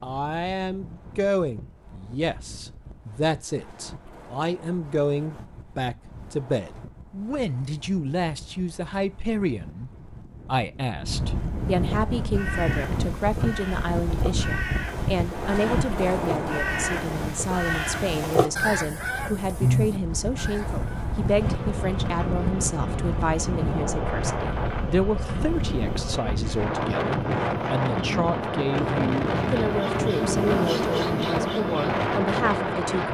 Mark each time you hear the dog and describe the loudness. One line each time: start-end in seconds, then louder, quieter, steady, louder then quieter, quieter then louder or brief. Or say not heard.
not heard.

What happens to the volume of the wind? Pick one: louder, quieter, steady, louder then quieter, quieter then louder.
louder.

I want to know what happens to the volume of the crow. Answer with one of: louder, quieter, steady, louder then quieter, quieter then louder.
louder.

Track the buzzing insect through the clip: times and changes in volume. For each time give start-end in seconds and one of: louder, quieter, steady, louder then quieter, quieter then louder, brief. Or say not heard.
21.3-33.0 louder.